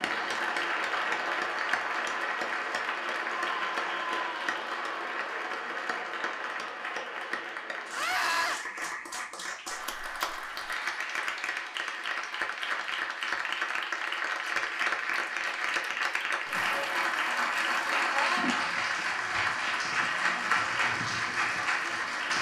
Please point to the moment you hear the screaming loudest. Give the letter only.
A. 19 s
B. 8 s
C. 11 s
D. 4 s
B.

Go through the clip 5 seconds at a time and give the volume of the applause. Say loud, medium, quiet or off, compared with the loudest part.
loud, medium, loud, loud, loud.